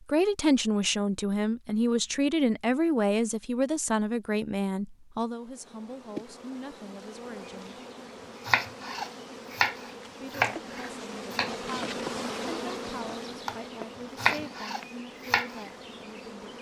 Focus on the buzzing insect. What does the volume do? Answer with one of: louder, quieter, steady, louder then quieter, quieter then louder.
louder then quieter.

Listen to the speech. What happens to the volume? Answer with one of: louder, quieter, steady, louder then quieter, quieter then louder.
quieter.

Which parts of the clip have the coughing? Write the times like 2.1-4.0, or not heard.
not heard.